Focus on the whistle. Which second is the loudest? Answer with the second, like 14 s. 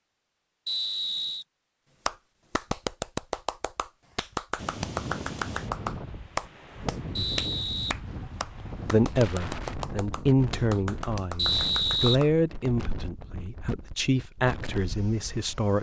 12 s.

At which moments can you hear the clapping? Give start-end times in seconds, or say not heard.
2.0-12.3.